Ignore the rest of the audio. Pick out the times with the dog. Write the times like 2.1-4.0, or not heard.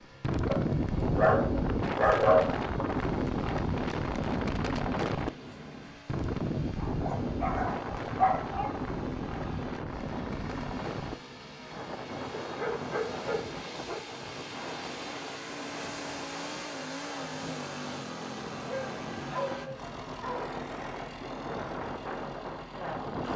0.5-2.5, 6.8-8.8, 12.4-14.0, 18.6-20.4.